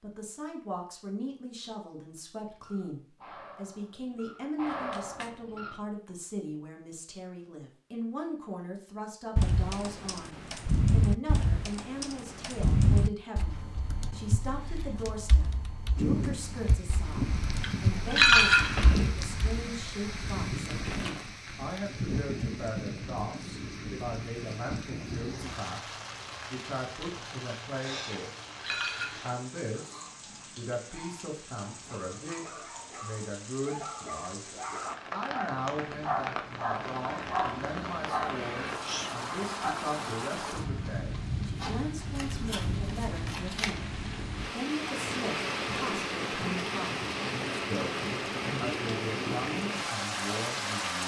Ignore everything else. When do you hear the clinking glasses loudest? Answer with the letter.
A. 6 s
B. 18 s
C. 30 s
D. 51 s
B.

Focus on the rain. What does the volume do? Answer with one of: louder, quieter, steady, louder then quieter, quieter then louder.
quieter then louder.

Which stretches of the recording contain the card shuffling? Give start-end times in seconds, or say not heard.
4.7-5.3, 20.7-21.3, 41.5-43.8.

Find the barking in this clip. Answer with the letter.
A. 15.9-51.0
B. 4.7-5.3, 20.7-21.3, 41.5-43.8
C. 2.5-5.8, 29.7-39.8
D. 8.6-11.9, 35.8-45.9
C.